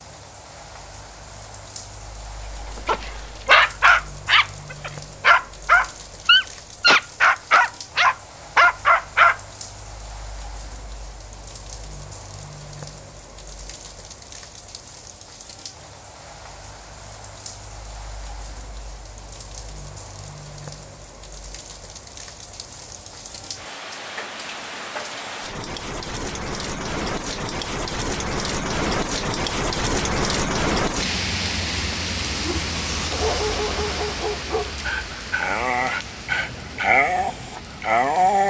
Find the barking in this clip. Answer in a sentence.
The barking can be heard from 2.8 to 9.3 s and from 32.4 to 38.4 s.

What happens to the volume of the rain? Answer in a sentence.
The volume of the rain goes up.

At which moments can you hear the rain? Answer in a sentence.
The rain can be heard from 0.0 to 38.4 s.